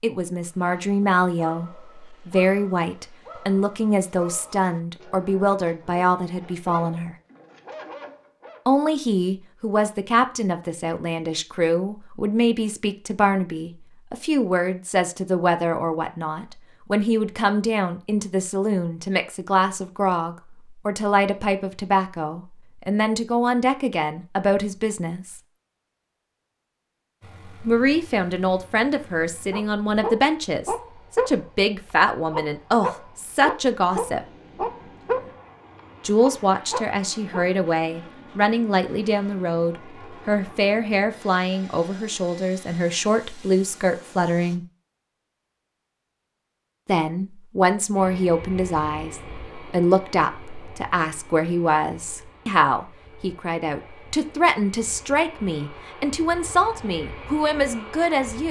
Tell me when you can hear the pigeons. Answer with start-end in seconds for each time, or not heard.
not heard.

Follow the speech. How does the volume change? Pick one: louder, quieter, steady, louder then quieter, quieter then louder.
steady.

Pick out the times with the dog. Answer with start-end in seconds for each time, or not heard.
0.5-8.7, 29.5-31.5, 32.3-35.4, 36.2-37.5.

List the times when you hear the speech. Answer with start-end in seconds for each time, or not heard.
0.0-7.2, 8.7-25.4, 27.6-34.2, 36.0-44.6, 46.9-58.4.